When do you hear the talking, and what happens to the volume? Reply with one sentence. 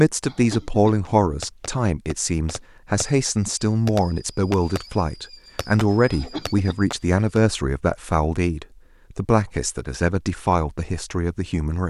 You can hear the talking from 0.0 to 11.8 s, at a steady volume.